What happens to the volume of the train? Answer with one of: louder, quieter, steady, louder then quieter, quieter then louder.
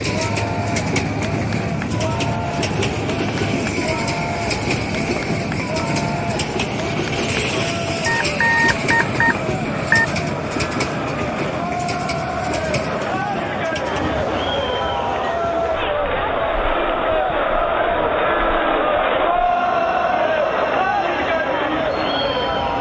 quieter.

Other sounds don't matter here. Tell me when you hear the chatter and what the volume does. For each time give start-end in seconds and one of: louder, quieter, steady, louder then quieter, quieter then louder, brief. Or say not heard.
0.0-22.7 louder.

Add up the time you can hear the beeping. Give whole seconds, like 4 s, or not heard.
2 s.